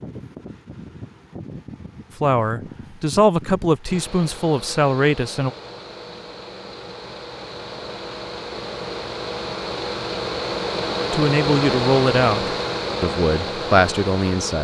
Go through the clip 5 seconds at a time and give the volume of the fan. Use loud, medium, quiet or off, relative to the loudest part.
quiet, medium, loud.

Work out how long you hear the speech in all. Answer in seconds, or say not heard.
7 s.